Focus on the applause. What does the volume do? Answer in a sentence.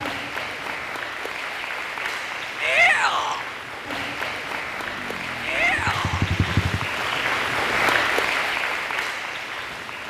The loudness of the applause goes up.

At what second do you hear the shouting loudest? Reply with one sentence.
The volume of the shouting peaks at 3 seconds.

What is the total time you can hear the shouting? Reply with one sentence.
The shouting can be heard for 2 seconds in total.